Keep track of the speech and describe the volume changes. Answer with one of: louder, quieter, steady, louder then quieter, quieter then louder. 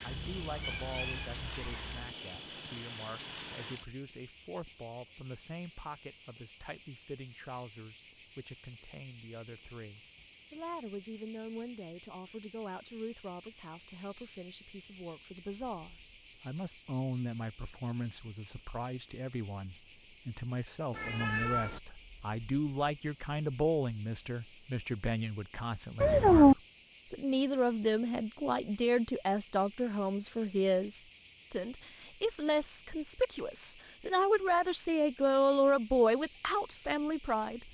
louder.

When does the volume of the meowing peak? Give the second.
26 s.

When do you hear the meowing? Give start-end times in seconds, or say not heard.
0.1-2.0, 20.9-21.8, 26.0-26.6.